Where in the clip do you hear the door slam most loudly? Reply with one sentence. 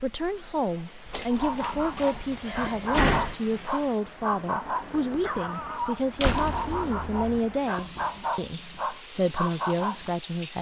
The loudest moment of the door slam is at 3 seconds.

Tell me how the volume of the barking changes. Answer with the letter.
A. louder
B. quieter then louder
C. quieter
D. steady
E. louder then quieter
D.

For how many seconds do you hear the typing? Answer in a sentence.
The typing can't be heard in this clip.